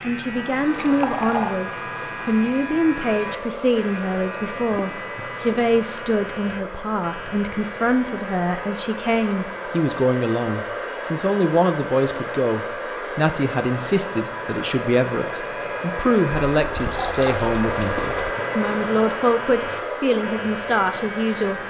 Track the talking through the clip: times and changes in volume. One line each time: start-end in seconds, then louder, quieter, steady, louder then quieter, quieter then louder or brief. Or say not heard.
0.0-21.6 steady.